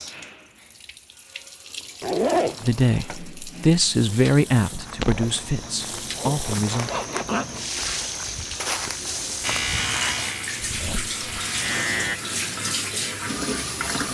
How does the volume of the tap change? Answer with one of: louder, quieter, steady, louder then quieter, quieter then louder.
louder.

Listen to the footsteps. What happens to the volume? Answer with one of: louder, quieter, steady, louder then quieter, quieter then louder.
louder.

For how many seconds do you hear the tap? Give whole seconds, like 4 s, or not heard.
14 s.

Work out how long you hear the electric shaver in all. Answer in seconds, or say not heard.
3 s.